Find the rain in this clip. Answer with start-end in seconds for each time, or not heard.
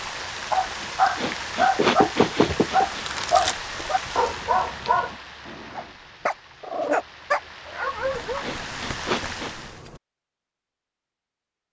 0.0-9.8.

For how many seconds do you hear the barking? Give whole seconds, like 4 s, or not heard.
8 s.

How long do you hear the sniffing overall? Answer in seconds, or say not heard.
4 s.